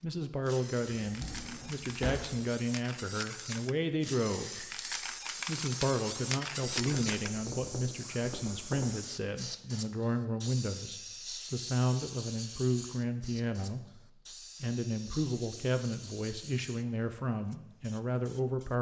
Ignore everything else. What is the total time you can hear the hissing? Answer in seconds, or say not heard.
19 s.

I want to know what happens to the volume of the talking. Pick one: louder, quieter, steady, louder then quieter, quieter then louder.
steady.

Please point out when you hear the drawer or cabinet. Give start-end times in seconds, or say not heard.
1.0-2.4.